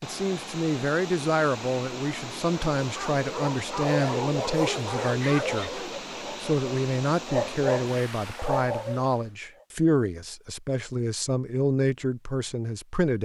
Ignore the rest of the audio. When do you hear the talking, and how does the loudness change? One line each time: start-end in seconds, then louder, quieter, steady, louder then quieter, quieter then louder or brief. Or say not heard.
0.0-13.2 steady.